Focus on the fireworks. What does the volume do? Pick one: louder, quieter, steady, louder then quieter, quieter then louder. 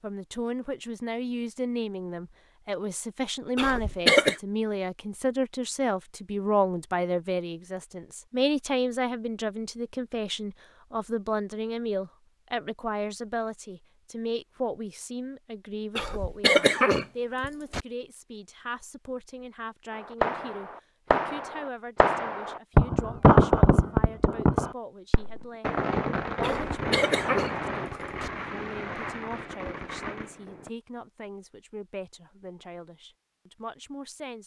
louder then quieter.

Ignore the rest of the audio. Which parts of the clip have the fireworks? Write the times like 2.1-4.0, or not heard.
19.9-30.7.